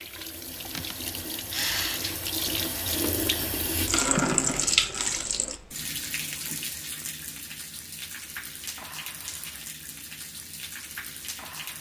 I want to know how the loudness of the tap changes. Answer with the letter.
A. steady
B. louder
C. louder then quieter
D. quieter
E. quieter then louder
C.